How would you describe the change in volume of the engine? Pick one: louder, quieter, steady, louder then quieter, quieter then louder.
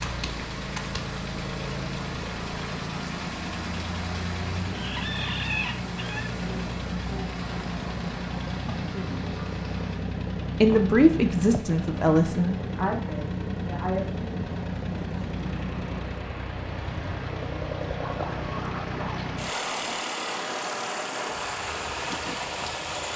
steady.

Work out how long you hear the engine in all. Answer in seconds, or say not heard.
23 s.